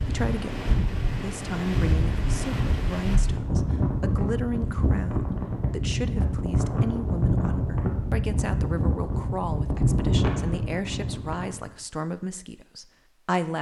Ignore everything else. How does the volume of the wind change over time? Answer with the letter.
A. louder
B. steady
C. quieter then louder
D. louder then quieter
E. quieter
B.